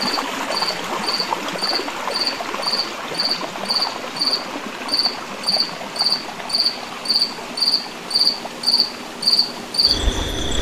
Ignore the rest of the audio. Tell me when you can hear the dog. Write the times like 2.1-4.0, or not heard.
not heard.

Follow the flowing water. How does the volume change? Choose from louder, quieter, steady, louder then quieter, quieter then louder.
quieter.